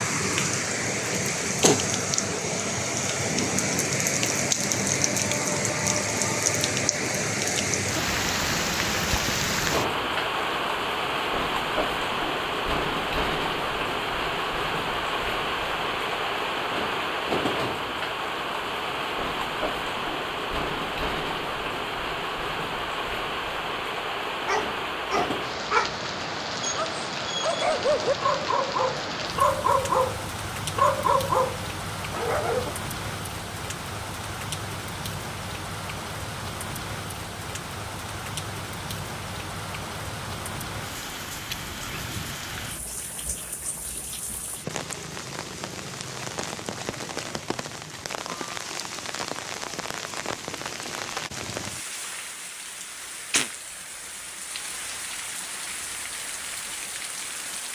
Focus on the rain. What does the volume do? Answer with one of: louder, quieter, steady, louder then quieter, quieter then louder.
quieter.